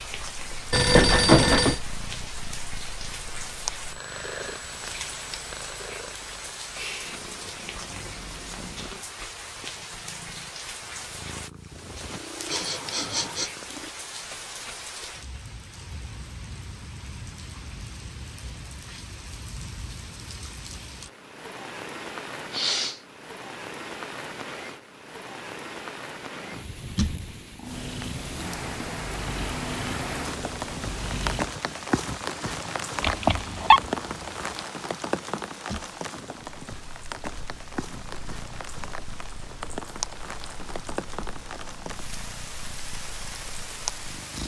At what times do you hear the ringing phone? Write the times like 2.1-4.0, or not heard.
0.7-1.8, 33.0-33.8.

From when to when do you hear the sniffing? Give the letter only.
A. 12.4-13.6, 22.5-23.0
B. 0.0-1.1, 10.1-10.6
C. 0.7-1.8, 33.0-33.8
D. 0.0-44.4
A.